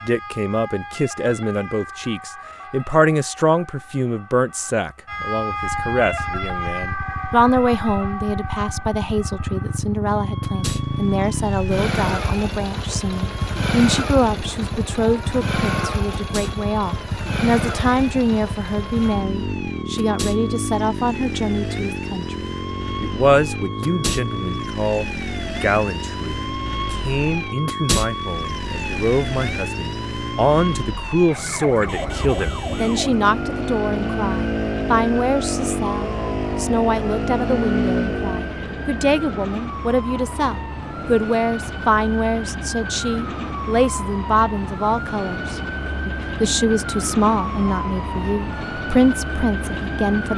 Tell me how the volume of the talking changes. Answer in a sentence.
The volume of the talking stays about the same.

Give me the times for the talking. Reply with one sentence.
You can hear the talking from 0.0 to 50.3 s.